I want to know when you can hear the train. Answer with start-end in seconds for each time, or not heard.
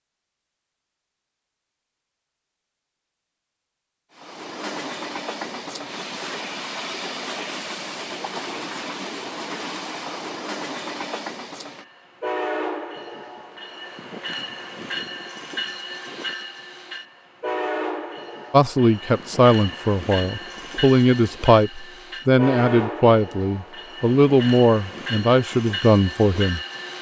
4.2-26.9.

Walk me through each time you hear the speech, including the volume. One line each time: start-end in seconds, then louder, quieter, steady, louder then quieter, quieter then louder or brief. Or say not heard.
18.5-26.6 steady.